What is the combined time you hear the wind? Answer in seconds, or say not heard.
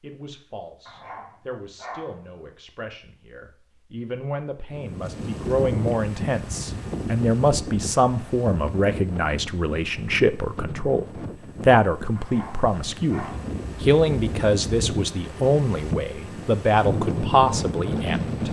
14 s.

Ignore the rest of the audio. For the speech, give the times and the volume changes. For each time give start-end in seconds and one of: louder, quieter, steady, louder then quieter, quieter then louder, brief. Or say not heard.
0.0-18.4 louder.